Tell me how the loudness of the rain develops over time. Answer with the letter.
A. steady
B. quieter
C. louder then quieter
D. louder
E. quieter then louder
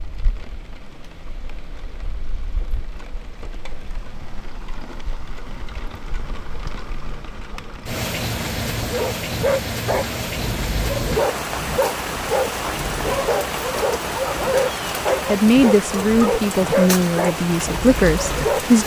D.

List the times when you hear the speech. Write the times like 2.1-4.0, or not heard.
15.3-18.8.